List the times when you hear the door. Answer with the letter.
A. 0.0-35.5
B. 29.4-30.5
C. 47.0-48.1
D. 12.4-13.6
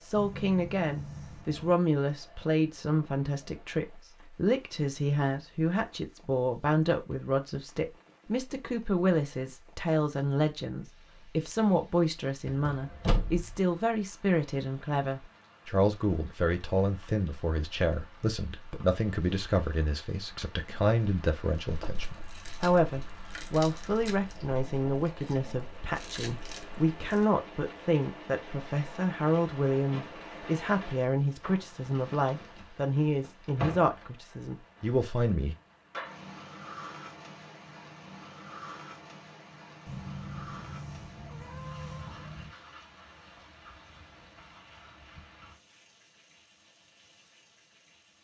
D.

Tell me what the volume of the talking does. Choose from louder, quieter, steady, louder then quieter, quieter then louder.
steady.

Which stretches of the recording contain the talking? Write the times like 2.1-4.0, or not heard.
0.0-35.5.